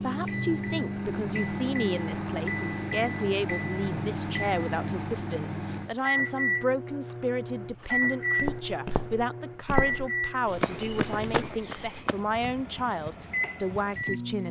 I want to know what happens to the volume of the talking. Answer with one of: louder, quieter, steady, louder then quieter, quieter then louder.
steady.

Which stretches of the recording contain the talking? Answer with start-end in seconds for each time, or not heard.
0.0-14.4.